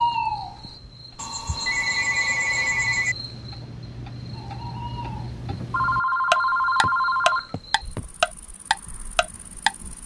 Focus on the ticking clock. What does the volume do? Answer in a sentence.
The volume of the ticking clock goes up.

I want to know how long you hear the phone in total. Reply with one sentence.
You can hear the phone for 4 seconds altogether.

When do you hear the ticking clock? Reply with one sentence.
The ticking clock can be heard from 0.0 to 9.8 s.